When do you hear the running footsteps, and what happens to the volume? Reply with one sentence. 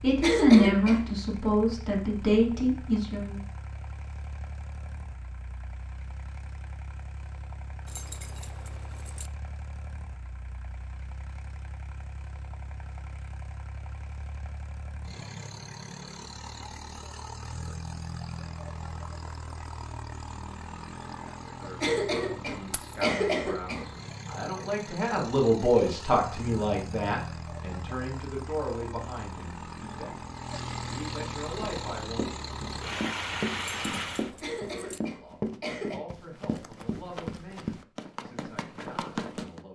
The running footsteps can be heard from 31.6 to 39.6 s, at a steady volume.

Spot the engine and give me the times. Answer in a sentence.
The engine can be heard from 0.0 to 34.4 s.